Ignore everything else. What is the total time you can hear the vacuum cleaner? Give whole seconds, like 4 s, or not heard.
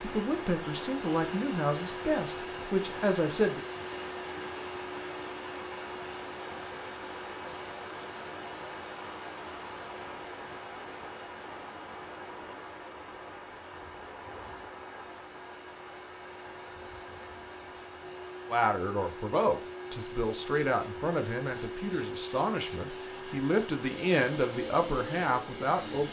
26 s.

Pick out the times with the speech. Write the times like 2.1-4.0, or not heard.
0.0-3.6, 18.5-26.0.